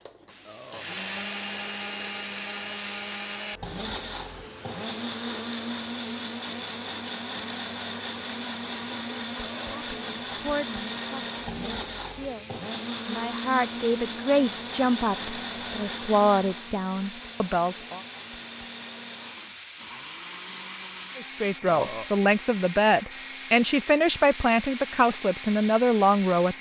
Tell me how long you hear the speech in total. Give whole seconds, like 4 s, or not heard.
14 s.